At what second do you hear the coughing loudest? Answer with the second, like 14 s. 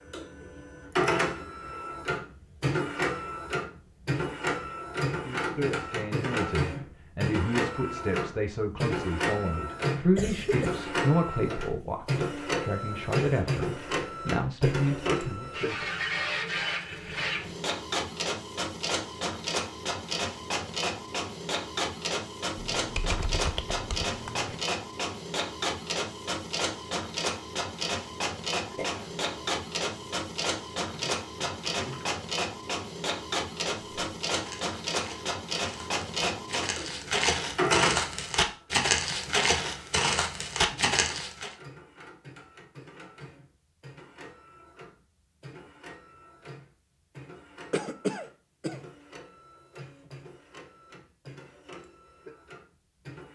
48 s.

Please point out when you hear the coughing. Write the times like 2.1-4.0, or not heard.
10.2-10.9, 28.7-29.6, 47.7-48.8.